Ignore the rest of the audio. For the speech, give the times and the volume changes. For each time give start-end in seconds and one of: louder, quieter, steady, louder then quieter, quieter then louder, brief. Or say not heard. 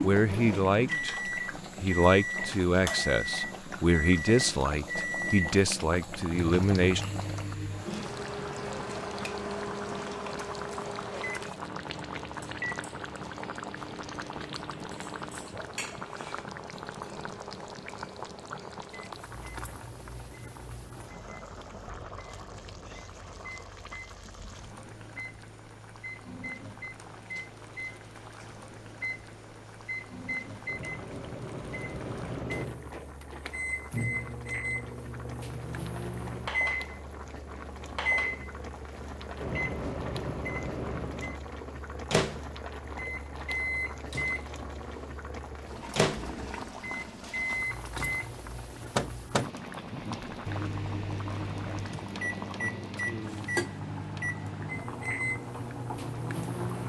0.0-7.0 steady.